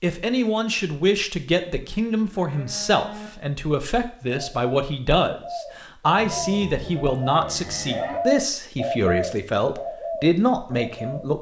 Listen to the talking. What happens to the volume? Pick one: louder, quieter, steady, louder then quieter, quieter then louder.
steady.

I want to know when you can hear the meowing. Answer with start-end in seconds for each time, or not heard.
not heard.